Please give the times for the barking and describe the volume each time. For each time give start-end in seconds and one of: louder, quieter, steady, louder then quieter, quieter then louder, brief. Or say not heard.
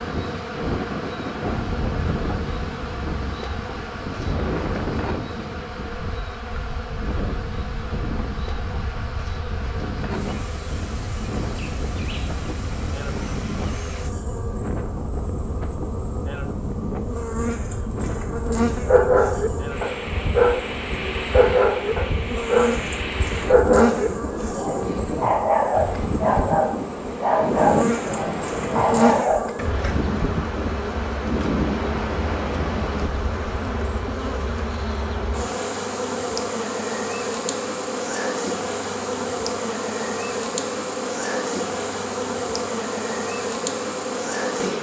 18.7-29.6 steady.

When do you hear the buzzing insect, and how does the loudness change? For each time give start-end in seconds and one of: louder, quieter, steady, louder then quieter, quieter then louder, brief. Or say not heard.
0.0-44.7 louder.